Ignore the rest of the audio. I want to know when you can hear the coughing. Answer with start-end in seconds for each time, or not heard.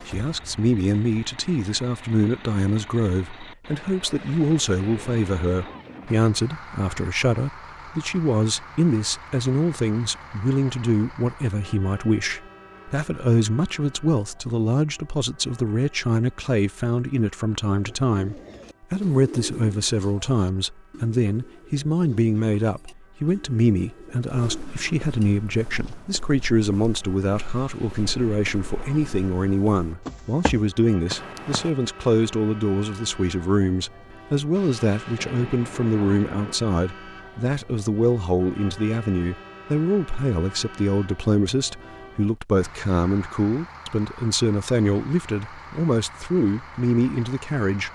not heard.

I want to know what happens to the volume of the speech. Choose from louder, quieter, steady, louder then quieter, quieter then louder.
steady.